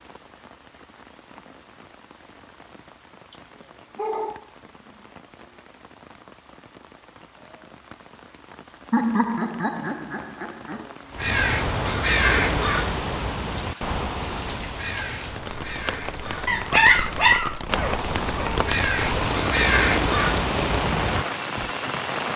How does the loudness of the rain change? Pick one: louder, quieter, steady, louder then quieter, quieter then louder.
louder.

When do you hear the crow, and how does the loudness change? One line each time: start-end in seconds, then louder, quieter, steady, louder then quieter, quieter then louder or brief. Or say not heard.
11.1-21.7 quieter then louder.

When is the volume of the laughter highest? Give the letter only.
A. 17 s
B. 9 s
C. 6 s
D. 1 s
B.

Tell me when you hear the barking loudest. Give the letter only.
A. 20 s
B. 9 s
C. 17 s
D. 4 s
C.